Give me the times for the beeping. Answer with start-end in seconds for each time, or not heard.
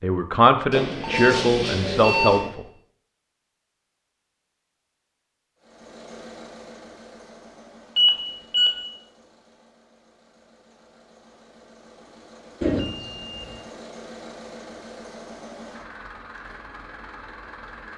0.7-2.5, 8.0-8.7, 12.6-13.5.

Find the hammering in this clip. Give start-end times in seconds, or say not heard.
not heard.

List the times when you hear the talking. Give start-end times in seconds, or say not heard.
0.0-2.6.